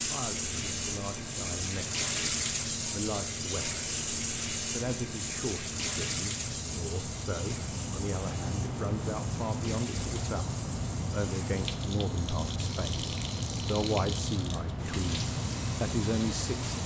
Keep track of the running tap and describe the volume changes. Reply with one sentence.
The loudness of the running tap goes down.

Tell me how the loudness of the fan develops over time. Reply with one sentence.
The volume of the fan goes up.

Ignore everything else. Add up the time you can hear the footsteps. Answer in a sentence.
The footsteps can't be heard in this clip.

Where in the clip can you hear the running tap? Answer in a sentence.
The running tap can be heard from 0.0 to 16.8 s.